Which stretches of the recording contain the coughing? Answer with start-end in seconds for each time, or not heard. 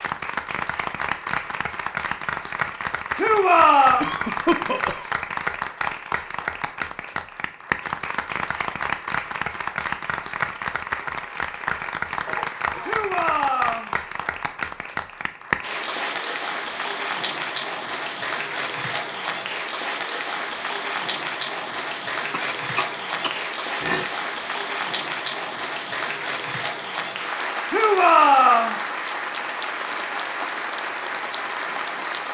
4.0-5.2, 12.2-13.0, 22.3-24.1.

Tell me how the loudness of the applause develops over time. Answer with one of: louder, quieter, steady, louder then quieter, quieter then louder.
steady.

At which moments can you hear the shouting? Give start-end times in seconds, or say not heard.
3.1-4.0, 12.8-13.9, 27.7-28.8.